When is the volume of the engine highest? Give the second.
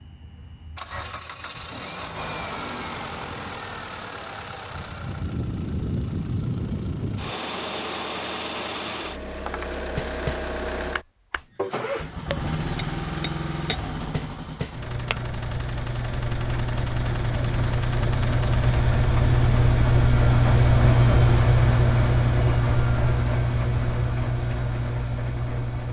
21 s.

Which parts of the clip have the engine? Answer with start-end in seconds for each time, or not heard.
0.0-25.8.